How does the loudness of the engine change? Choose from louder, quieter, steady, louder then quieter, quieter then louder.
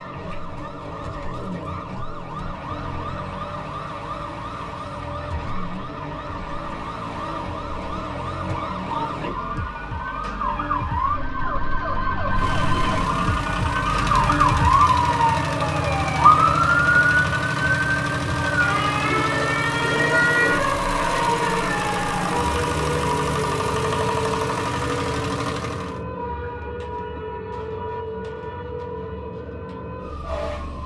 louder.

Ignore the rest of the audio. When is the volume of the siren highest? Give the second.
17 s.